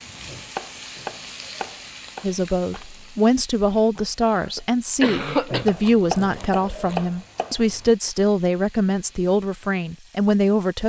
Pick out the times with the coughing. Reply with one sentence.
The coughing can be heard from 4.0 to 5.7 s.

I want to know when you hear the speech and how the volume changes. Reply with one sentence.
The speech can be heard from 2.2 to 10.8 s, at a steady volume.